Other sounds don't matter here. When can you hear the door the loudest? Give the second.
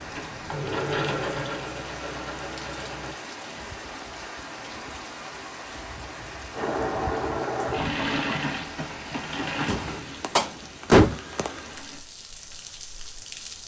11 s.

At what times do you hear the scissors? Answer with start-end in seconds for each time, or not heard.
not heard.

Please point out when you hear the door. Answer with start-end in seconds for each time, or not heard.
9.7-11.2.